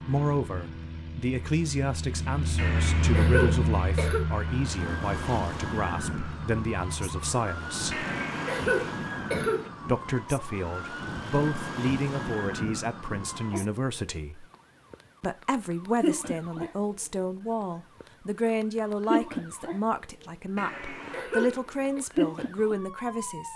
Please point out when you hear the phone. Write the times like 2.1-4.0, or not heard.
not heard.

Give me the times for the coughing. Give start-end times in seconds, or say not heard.
2.5-4.2, 7.9-9.7, 20.6-22.0.